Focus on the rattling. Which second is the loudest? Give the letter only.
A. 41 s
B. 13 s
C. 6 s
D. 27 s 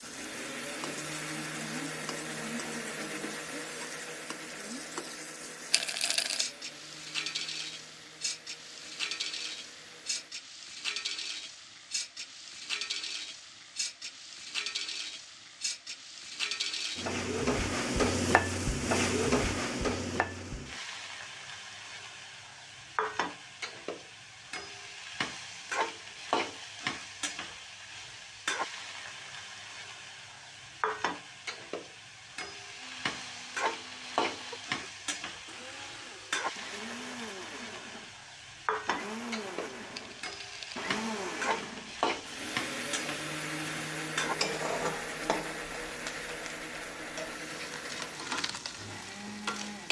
C.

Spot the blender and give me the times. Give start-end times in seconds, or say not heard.
0.0-10.3, 32.8-49.8.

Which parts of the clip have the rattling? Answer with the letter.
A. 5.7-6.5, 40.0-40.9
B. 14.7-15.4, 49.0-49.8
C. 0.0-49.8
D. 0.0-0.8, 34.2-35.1
A.